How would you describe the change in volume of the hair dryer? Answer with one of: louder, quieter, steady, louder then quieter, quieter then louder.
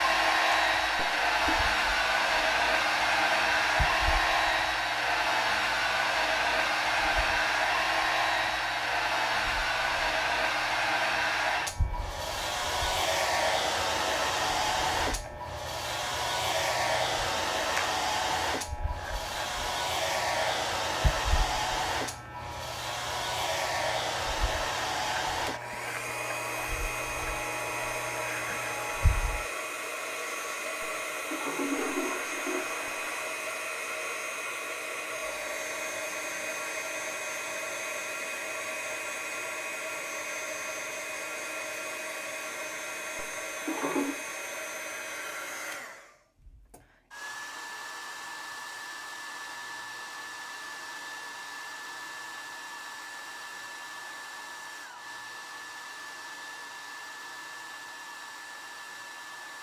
quieter.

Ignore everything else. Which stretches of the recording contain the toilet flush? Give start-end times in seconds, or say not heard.
0.9-1.6, 30.8-33.3, 43.1-44.2.